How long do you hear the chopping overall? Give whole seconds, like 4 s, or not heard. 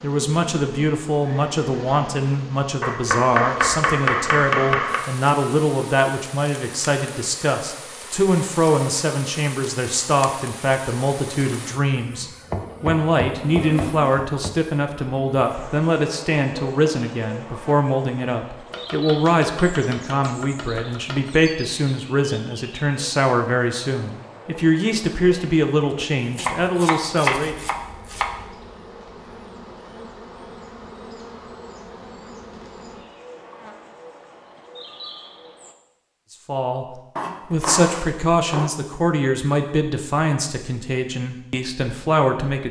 11 s.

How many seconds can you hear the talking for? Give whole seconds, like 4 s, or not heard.
34 s.